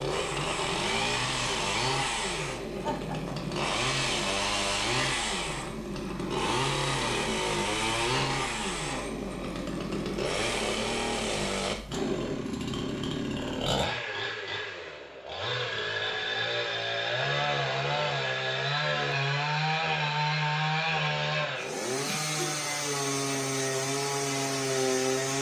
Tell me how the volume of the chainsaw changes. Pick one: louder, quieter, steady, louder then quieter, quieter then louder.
steady.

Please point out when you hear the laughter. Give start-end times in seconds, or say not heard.
2.8-3.4, 22.0-22.7.